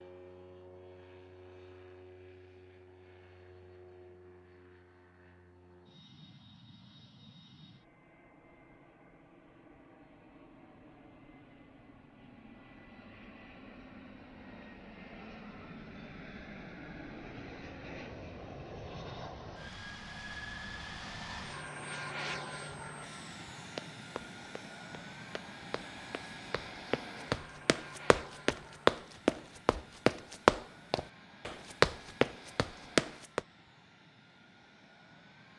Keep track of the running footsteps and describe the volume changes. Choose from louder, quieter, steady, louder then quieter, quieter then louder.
louder.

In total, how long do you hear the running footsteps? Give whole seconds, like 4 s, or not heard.
10 s.